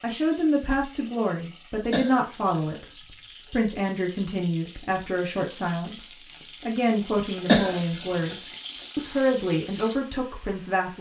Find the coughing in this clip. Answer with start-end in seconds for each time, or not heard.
1.9-2.8, 7.5-8.3.